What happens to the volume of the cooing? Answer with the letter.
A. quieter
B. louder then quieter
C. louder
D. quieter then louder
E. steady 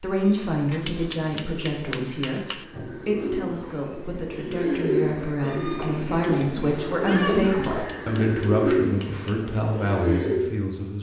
C.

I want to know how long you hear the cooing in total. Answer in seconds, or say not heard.
10 s.